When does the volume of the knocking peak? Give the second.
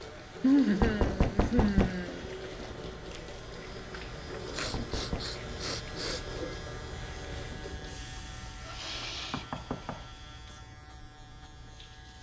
1 s.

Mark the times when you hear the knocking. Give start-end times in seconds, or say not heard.
0.8-2.3, 4.7-5.3, 9.3-10.6.